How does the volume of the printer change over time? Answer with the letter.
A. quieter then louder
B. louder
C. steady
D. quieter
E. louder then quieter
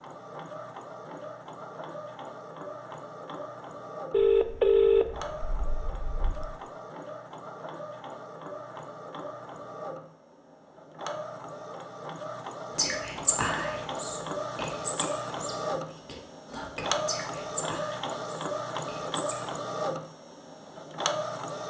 B.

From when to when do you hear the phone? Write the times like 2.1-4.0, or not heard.
4.1-6.5.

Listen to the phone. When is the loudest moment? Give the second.
5 s.